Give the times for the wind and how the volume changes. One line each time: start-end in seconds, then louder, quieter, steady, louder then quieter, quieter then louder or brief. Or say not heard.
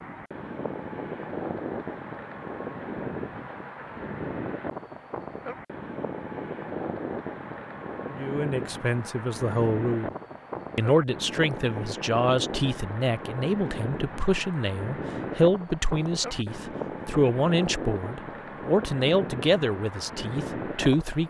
0.0-21.2 steady.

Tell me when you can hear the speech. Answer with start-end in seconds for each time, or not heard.
8.1-10.1, 10.8-21.2.